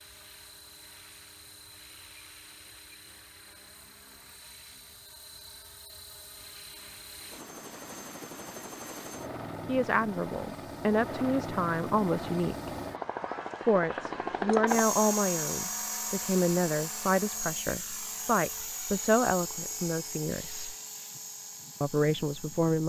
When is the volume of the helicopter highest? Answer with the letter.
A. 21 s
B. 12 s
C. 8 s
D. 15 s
D.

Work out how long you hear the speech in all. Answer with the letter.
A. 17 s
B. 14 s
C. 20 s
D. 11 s
D.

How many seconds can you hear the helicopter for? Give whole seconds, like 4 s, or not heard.
23 s.